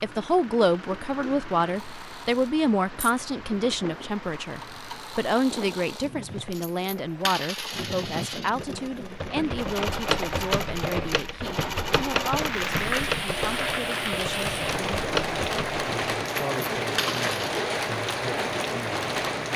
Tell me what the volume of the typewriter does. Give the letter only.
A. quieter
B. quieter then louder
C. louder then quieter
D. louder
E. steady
E.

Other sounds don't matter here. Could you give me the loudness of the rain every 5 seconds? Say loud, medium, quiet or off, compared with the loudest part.
quiet, quiet, loud, loud.